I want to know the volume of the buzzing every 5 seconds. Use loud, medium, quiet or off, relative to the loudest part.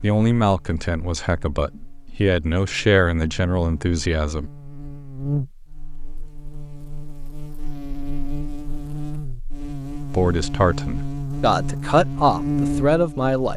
quiet, medium, loud.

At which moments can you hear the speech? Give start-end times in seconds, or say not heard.
0.0-4.5, 10.1-13.5.